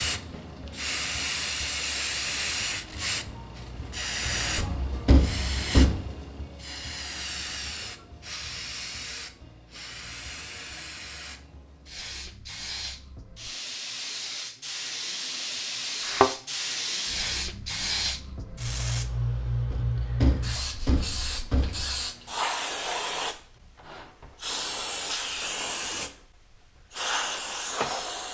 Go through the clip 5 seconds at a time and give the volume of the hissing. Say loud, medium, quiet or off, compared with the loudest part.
loud, medium, medium, loud, loud, loud.